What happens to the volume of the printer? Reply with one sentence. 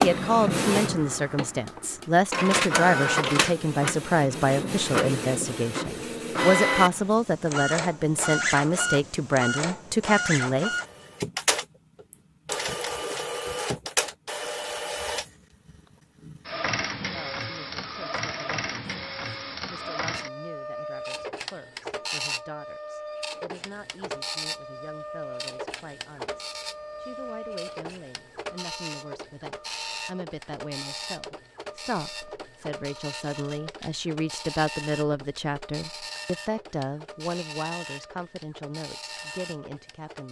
The loudness of the printer goes down.